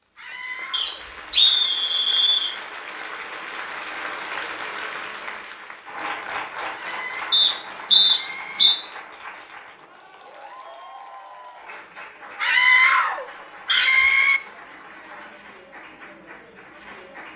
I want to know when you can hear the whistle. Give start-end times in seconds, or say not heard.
0.7-2.5, 7.3-8.8, 13.7-14.3.